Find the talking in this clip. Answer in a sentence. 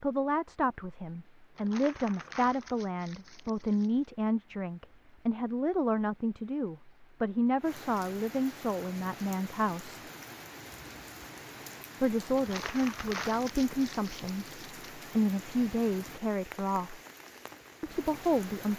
The talking can be heard from 0.0 to 10.1 s, from 12.0 to 17.0 s and from 17.8 to 18.7 s.